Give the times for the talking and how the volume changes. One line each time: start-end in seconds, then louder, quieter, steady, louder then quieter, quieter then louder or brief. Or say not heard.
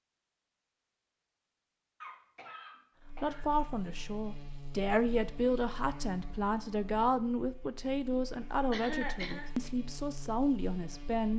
3.2-11.3 steady.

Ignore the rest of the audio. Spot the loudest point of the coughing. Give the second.
9 s.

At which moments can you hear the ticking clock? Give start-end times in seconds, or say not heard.
not heard.